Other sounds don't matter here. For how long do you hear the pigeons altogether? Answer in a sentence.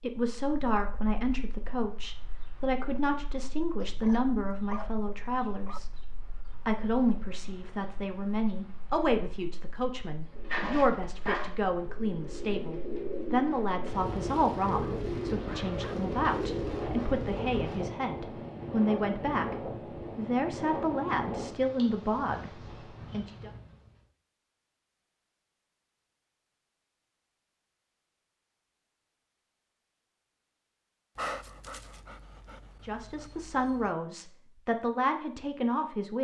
The pigeons can be heard for 7 seconds in total.